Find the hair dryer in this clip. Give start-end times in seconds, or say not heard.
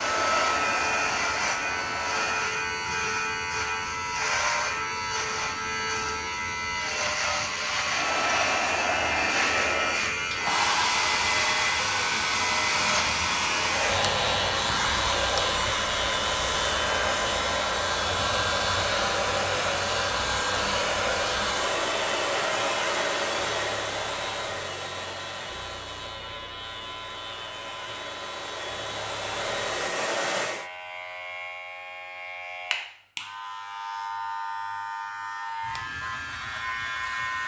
0.0-2.5, 7.8-30.7.